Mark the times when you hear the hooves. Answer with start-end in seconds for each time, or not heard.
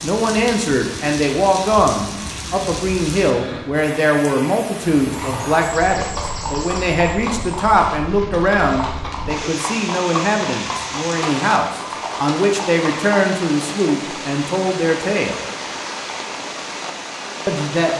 5.1-13.3.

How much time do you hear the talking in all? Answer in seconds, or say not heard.
16 s.